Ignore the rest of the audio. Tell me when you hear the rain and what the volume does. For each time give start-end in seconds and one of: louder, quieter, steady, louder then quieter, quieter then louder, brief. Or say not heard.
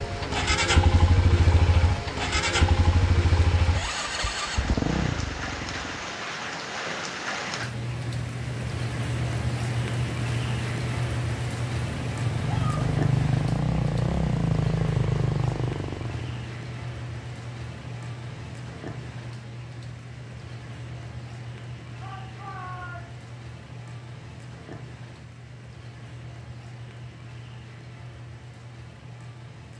0.0-29.7 louder then quieter.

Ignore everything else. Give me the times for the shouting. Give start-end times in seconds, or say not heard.
12.4-12.8, 22.0-23.2.